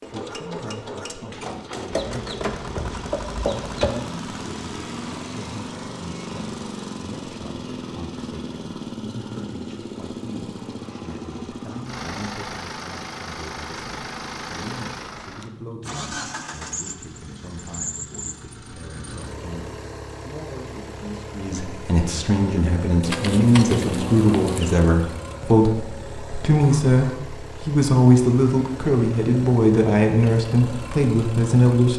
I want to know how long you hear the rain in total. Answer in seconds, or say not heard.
not heard.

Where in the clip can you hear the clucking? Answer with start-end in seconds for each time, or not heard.
1.9-4.0, 23.0-24.8.